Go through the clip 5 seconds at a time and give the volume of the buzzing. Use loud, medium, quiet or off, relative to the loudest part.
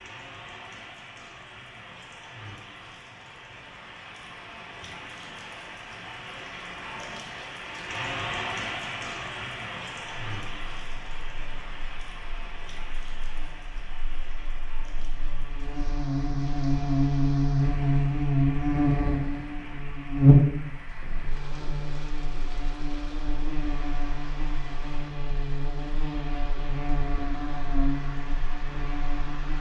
off, off, quiet, loud, loud, medium.